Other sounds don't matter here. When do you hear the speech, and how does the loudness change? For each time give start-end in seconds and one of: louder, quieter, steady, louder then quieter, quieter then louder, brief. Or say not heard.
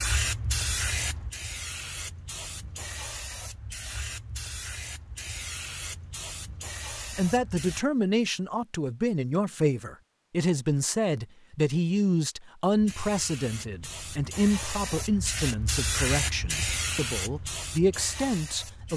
7.1-18.9 steady.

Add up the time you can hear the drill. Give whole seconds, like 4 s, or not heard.
not heard.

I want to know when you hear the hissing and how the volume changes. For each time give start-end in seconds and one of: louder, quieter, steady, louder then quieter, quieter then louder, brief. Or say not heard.
0.0-7.8 quieter
12.8-18.9 louder then quieter.